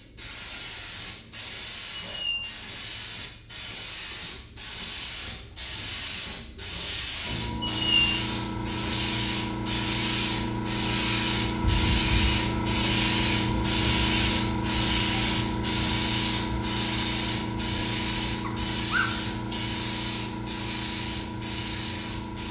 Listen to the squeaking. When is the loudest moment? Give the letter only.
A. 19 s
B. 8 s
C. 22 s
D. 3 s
B.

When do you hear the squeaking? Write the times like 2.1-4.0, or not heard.
2.0-2.5, 7.6-8.2, 18.4-19.1.